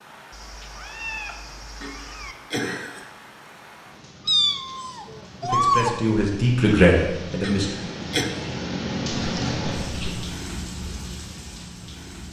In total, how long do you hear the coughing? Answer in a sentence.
You can hear the coughing for 2 seconds altogether.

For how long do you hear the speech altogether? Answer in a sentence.
The speech can be heard for 2 seconds in total.